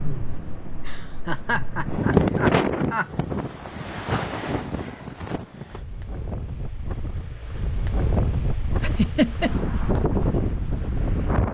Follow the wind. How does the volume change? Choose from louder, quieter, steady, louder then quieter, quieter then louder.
quieter then louder.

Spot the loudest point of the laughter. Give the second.
9 s.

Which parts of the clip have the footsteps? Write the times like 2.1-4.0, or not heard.
not heard.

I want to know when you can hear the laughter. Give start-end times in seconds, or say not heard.
0.7-3.1, 8.8-9.6.